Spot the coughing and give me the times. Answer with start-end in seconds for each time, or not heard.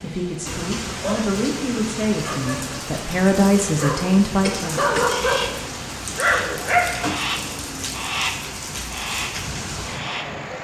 4.4-5.3.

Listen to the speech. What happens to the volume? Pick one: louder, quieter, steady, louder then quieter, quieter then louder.
louder.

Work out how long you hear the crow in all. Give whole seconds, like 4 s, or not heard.
5 s.